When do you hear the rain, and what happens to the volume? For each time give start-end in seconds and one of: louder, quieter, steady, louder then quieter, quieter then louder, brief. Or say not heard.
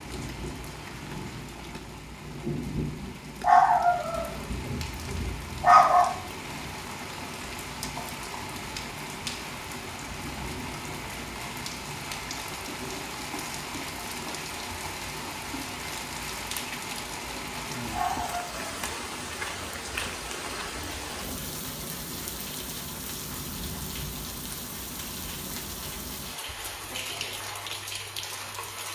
0.0-28.9 steady.